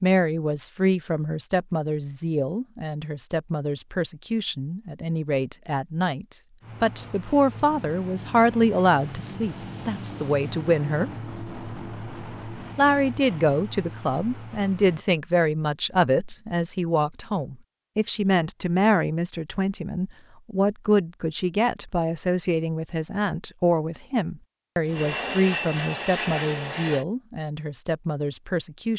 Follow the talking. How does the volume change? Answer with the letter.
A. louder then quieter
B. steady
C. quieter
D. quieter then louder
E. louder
B.